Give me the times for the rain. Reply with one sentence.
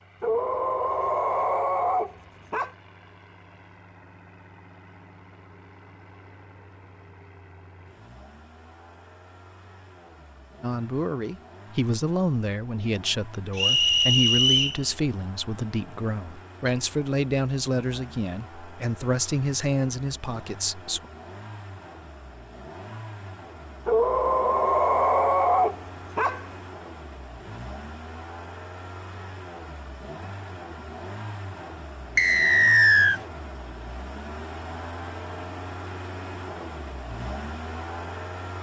The rain can't be heard in this clip.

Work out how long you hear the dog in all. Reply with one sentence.
You can hear the dog for 5 seconds altogether.